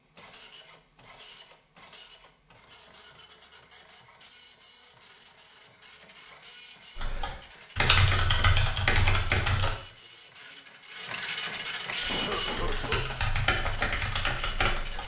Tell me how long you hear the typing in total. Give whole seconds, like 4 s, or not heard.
6 s.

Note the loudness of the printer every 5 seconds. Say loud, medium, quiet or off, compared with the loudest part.
quiet, medium, loud.